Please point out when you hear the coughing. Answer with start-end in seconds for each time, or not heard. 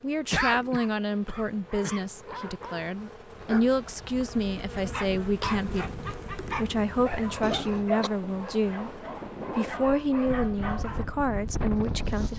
0.3-2.0, 7.4-8.1.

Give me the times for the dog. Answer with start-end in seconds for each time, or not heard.
1.6-11.1.